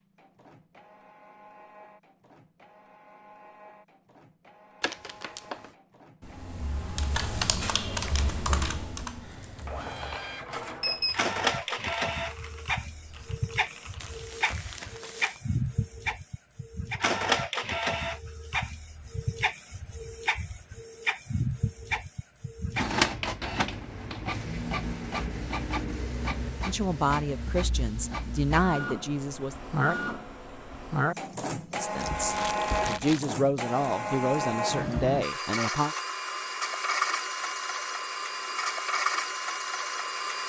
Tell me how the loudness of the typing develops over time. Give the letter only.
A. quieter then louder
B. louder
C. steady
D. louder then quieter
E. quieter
E.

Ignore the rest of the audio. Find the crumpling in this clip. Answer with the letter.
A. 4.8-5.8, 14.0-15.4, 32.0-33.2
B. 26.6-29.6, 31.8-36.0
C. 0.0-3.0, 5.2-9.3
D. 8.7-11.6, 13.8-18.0
A.